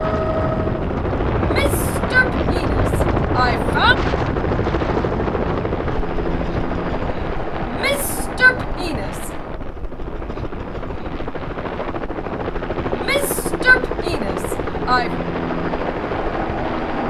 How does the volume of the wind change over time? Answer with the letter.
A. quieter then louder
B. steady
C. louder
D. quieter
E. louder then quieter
D.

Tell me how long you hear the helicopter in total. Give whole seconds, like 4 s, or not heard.
17 s.